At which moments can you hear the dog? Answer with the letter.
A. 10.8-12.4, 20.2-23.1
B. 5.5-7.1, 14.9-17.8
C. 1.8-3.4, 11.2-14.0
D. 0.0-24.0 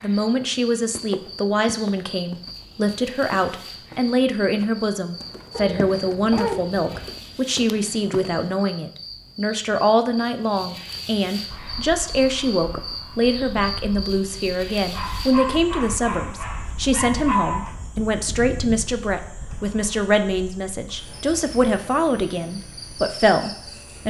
B.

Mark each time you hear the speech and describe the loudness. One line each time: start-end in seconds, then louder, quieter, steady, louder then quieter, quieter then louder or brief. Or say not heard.
0.0-24.0 steady.